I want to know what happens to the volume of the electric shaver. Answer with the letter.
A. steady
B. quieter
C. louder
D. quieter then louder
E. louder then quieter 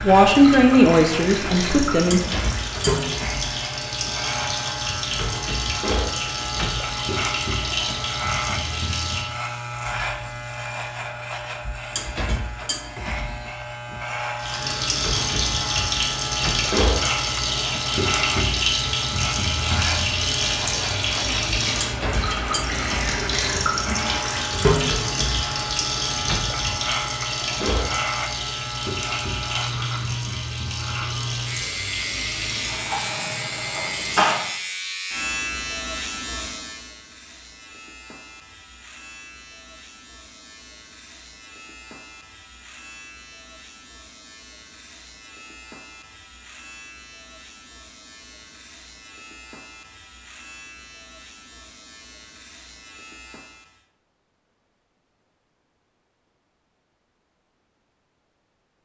B.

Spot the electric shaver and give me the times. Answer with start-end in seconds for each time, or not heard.
0.0-53.9.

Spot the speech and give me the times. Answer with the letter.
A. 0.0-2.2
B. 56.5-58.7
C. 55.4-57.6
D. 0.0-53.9
A.